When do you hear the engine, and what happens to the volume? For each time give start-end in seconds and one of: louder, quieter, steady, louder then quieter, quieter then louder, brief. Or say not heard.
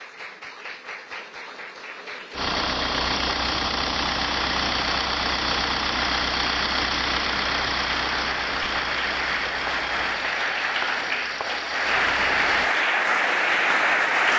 2.3-12.8 quieter.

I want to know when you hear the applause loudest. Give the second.
14 s.